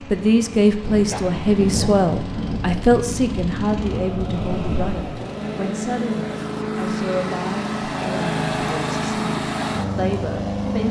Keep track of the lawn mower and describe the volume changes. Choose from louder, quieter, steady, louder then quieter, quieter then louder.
louder.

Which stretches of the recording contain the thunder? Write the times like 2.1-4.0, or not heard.
0.8-5.2.